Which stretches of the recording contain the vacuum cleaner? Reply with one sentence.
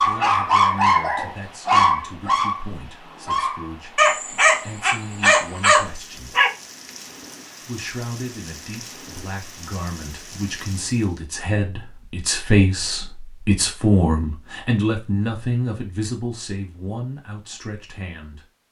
The vacuum cleaner can't be heard in this clip.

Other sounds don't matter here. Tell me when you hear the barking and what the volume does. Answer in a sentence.
You can hear the barking from 0.0 to 6.5 s, getting quieter then louder.